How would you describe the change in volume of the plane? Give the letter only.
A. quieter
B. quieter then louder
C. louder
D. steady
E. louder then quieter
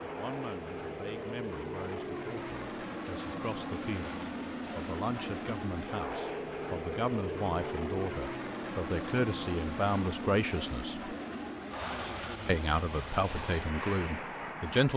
D.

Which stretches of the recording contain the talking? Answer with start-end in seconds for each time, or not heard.
0.0-11.2, 12.4-14.9.